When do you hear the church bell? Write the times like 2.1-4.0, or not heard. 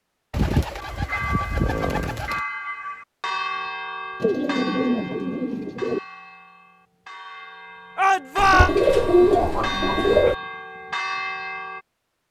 0.8-11.8.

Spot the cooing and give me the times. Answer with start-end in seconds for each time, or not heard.
0.3-2.4, 4.2-6.0, 8.3-10.3.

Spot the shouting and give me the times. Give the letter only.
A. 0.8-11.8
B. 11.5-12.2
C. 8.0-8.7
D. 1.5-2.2
C.